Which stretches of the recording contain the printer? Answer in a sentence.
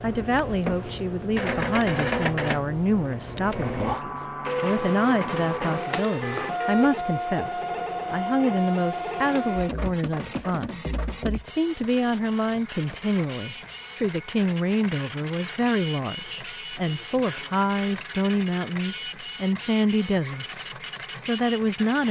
You can hear the printer from 0.0 to 22.0 s.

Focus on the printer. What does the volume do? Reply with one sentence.
The loudness of the printer goes down.